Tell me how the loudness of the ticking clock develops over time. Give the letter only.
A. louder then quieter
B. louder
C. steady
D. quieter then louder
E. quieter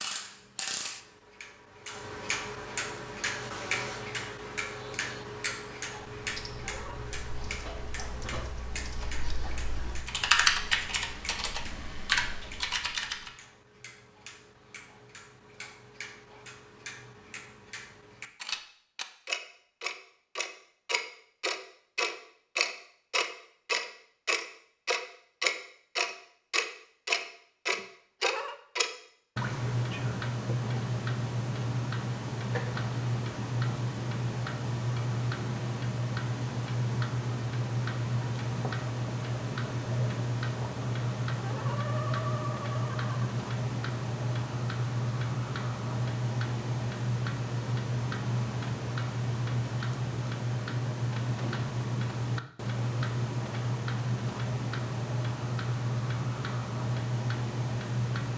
B.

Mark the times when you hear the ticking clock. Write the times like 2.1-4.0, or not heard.
0.0-58.3.